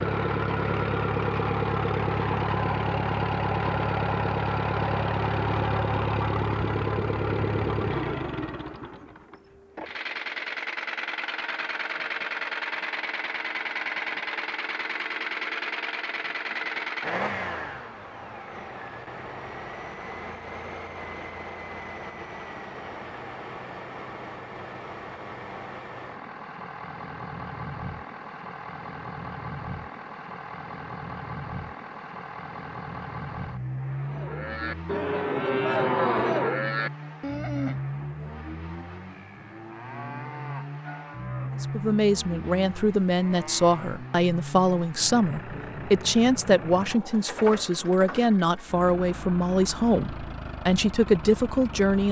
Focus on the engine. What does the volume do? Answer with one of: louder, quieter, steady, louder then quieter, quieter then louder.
quieter.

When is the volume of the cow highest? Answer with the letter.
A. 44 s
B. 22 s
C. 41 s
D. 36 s
D.